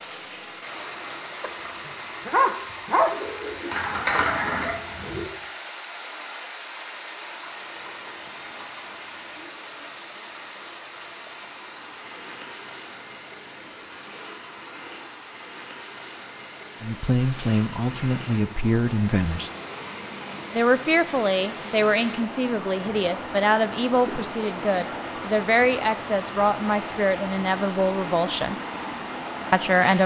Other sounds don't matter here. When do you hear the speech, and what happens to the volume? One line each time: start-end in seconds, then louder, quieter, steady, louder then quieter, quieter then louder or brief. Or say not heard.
16.8-19.5 brief
20.5-28.6 steady
29.5-30.0 brief.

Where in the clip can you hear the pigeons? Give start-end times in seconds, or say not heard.
3.1-5.2.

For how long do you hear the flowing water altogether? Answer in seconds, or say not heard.
30 s.